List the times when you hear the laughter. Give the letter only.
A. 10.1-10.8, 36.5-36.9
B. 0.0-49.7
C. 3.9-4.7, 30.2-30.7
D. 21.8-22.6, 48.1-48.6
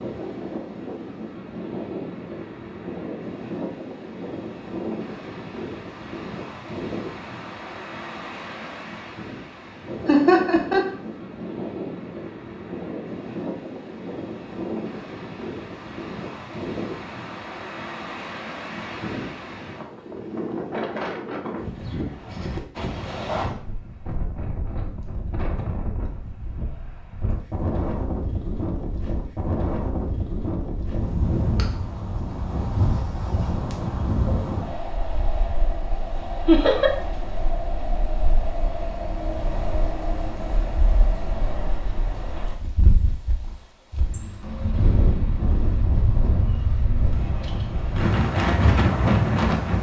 A.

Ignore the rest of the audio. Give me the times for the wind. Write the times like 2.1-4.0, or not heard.
0.0-49.7.